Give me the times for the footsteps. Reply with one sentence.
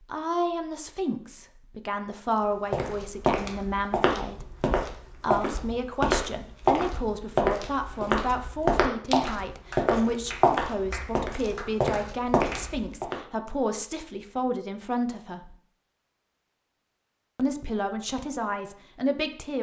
You can hear the footsteps from 2.7 to 13.2 s.